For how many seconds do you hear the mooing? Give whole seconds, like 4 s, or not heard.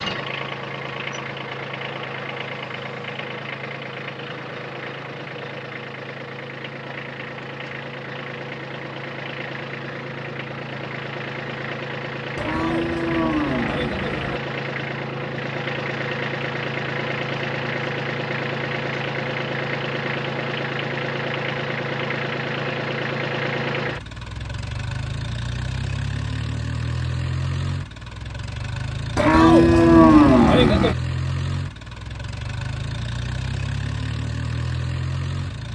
4 s.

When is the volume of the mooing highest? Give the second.
30 s.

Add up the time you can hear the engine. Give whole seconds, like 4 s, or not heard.
36 s.